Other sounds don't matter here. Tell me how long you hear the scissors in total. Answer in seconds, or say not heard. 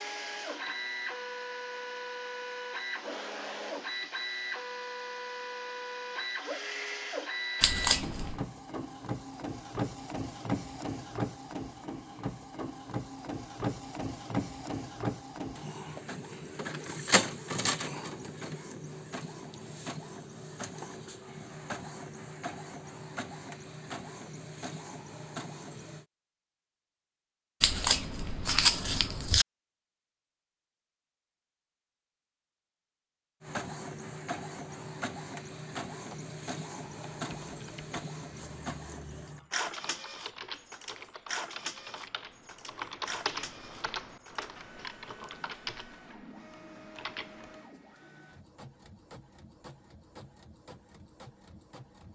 3 s.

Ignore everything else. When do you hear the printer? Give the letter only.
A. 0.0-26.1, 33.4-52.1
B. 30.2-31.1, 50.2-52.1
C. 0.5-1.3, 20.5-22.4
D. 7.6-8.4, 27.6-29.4
A.